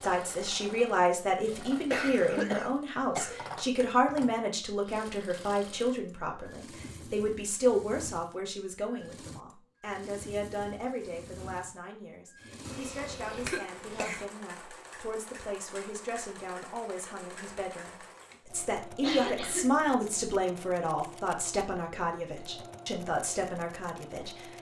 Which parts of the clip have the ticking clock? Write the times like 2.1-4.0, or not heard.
not heard.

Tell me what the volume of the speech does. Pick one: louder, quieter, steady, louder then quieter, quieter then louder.
quieter then louder.